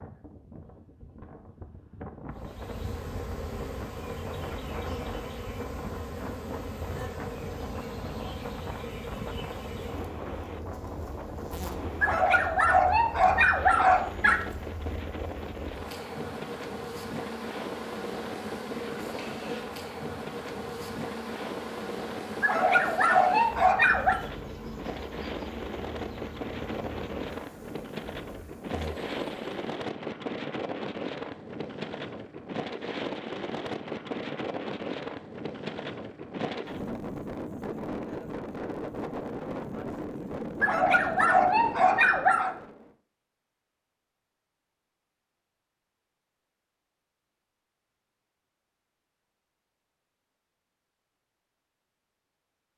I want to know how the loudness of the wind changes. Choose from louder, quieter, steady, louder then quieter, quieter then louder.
louder.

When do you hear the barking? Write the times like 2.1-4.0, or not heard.
12.0-14.4, 22.4-24.2, 40.6-42.5.